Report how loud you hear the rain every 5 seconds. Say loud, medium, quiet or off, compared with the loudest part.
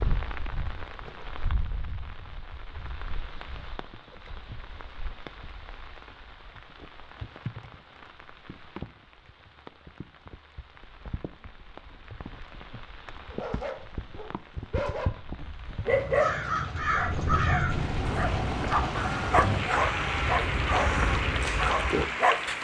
medium, quiet, quiet, loud, loud.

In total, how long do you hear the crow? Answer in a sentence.
The crow can be heard for 6 seconds in total.